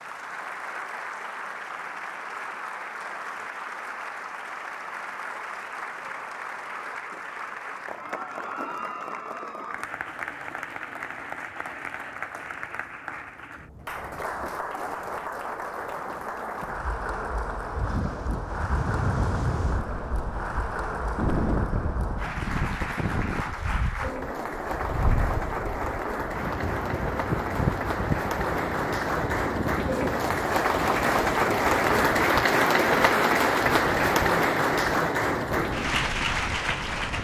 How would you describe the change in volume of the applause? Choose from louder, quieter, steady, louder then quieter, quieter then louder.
louder.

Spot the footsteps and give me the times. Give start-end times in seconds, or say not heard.
not heard.